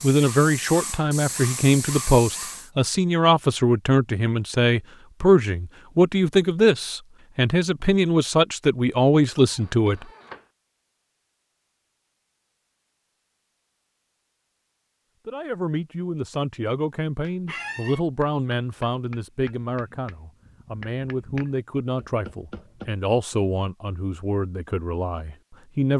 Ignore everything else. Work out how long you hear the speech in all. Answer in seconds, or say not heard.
21 s.